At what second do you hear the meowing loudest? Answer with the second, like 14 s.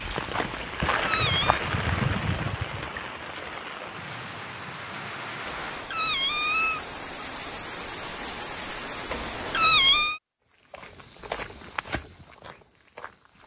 10 s.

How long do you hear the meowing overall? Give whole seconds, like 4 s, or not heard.
4 s.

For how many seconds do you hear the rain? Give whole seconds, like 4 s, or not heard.
10 s.